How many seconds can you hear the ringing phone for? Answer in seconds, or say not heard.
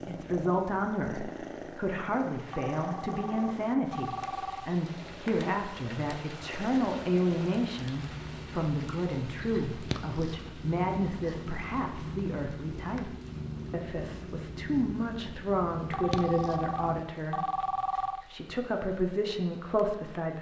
5 s.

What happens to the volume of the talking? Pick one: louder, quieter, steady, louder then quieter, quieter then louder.
steady.